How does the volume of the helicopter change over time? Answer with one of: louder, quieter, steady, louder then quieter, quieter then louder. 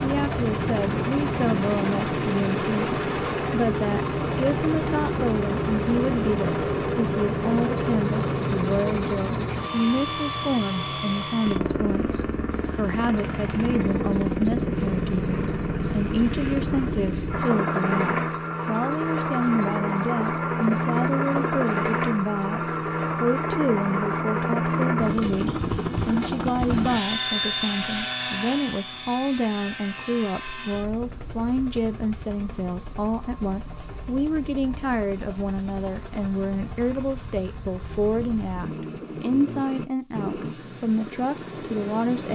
quieter.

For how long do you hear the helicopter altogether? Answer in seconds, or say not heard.
42 s.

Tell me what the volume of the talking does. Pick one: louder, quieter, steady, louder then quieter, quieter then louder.
steady.